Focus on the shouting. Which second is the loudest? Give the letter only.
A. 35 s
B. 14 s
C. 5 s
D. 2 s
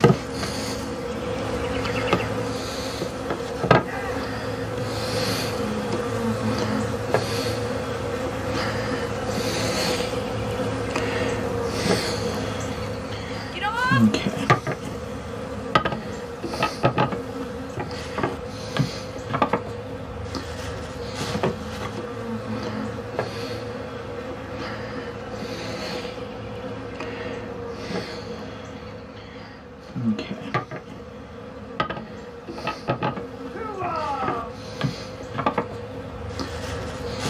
B.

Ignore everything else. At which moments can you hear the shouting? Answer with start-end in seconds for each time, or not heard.
3.8-4.3, 13.5-14.1, 33.5-34.6.